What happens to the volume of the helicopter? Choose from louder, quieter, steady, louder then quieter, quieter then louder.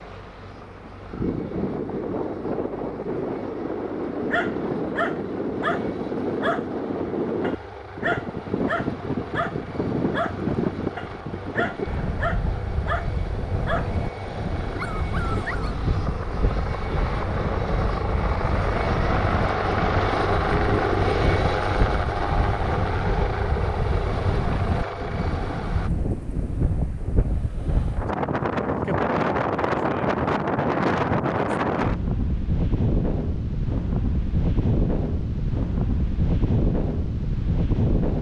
louder.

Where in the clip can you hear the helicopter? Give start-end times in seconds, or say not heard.
0.0-25.9.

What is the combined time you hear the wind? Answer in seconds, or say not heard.
38 s.